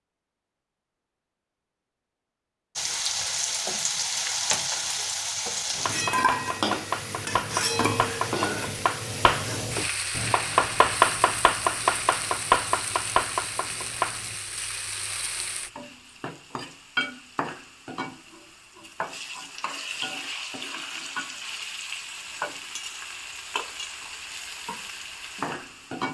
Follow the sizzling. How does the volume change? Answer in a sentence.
The loudness of the sizzling goes down.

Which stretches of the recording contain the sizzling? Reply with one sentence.
The sizzling can be heard from 2.8 to 26.0 s.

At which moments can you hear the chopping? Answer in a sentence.
You can hear the chopping from 5.8 to 14.3 s.